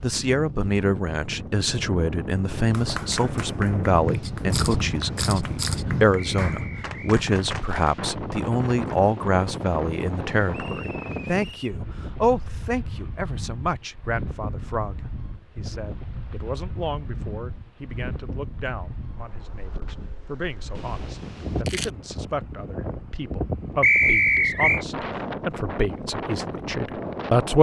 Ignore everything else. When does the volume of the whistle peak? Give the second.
24 s.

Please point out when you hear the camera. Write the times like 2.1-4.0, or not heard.
4.2-5.8, 20.8-21.9.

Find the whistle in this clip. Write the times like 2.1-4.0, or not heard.
6.2-7.0, 10.5-11.8, 23.8-24.8.